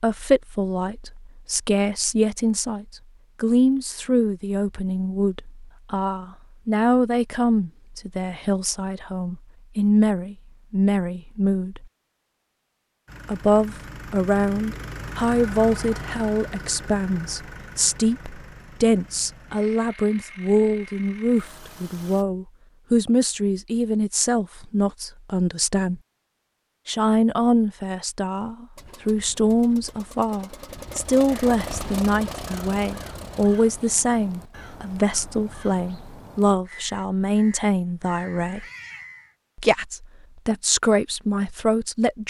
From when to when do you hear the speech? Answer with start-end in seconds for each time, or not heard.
0.0-11.8, 13.2-26.0, 26.9-38.6, 39.5-42.2.